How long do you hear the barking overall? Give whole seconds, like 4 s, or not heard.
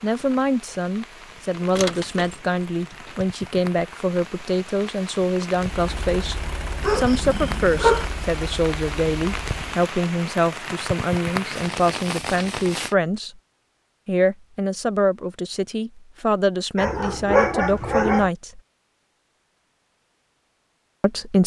3 s.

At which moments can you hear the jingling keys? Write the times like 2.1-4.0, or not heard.
1.6-3.2.